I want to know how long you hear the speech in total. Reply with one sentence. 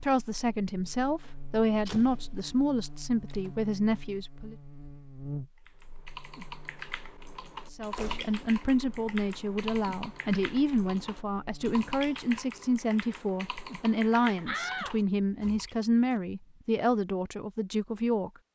The speech can be heard for 15 seconds in total.